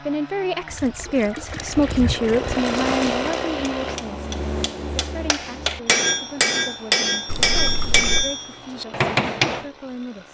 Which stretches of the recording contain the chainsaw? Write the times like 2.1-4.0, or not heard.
0.0-10.2.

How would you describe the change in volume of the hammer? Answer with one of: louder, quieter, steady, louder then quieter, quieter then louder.
louder.